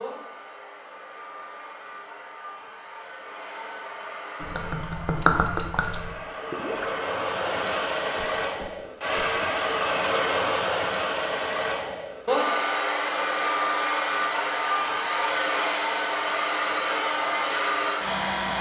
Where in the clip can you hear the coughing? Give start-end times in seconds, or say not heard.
not heard.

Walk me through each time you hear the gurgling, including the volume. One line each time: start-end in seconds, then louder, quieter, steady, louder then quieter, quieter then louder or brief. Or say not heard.
4.3-9.2 quieter.